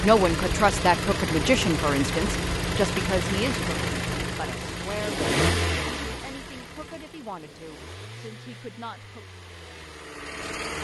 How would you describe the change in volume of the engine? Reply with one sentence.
The loudness of the engine goes down.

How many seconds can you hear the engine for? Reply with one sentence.
The engine can be heard for 11 seconds in total.